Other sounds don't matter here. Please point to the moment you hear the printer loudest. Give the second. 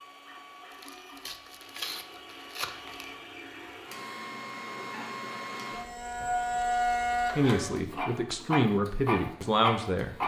7 s.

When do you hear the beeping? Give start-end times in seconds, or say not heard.
not heard.